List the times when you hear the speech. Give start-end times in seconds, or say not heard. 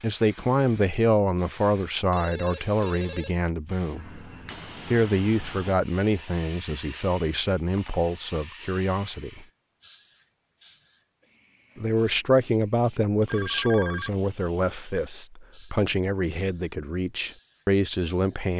0.0-4.2, 4.8-9.4, 11.8-18.5.